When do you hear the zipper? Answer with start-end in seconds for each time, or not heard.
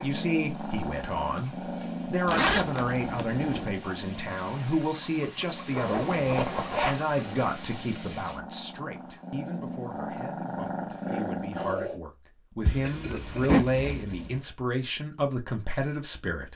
2.2-3.6, 5.7-7.0, 12.7-14.4.